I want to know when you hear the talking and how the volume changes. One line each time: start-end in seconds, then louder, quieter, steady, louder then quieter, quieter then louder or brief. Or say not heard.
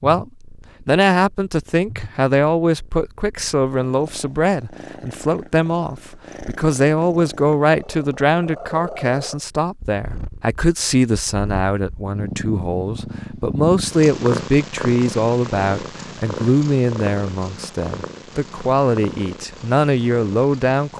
0.0-20.9 steady.